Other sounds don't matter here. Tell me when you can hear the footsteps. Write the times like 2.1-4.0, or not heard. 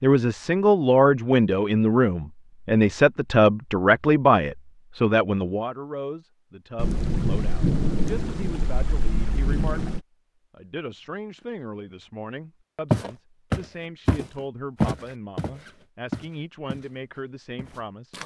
12.9-16.9, 17.6-18.2.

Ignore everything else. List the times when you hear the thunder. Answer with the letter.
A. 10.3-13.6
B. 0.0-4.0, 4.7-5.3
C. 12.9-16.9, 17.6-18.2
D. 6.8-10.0
D.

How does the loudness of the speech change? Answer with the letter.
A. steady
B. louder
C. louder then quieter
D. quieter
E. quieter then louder
D.